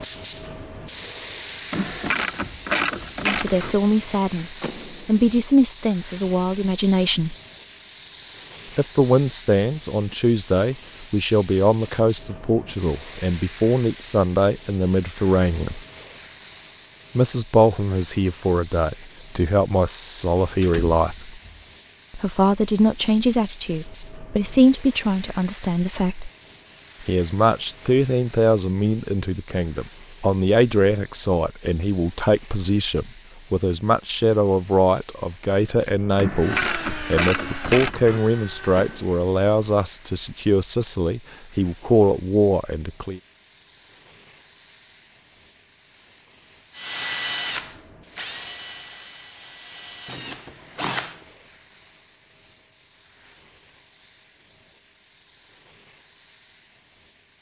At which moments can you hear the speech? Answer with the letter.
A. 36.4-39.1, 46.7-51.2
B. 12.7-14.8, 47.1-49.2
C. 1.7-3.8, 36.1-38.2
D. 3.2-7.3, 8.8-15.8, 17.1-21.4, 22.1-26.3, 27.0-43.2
D.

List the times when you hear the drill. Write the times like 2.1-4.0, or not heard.
36.4-39.1, 46.7-51.2.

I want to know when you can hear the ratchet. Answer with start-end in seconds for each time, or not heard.
1.7-3.8, 36.1-38.2.